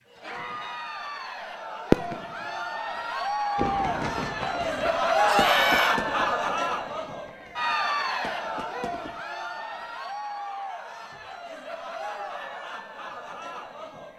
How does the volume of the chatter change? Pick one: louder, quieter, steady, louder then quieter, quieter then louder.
louder then quieter.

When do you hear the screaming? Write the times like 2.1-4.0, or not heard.
5.2-6.0.